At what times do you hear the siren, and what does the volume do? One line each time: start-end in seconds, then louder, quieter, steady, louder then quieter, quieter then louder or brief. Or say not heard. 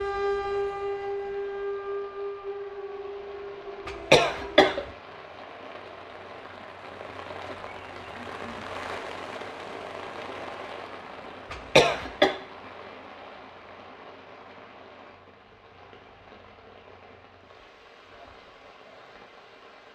0.0-4.7 quieter.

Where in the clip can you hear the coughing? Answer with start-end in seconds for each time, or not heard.
3.9-4.8, 11.5-12.3.